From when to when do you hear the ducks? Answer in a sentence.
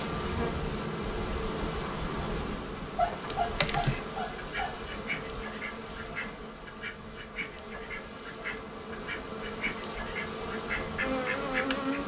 You can hear the ducks from 3.5 to 12.0 s.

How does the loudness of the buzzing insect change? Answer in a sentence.
The loudness of the buzzing insect goes down, then up.